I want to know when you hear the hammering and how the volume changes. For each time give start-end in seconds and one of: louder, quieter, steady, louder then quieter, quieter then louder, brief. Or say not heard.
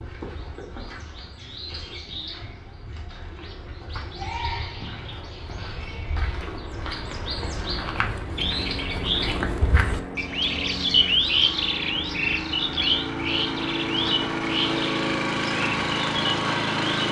not heard.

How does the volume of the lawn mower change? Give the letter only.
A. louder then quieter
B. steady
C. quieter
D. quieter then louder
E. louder
E.